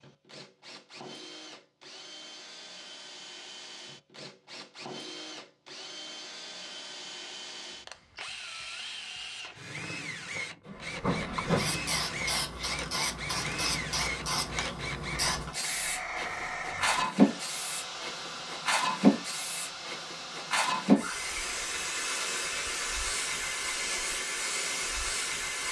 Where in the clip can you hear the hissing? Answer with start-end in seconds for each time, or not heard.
10.7-25.6.